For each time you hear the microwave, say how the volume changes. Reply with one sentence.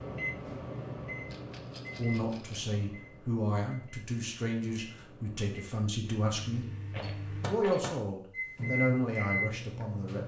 You can hear the microwave from 0.0 to 10.2 s, getting quieter then louder.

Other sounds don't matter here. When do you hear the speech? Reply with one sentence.
You can hear the speech from 1.9 to 10.2 s.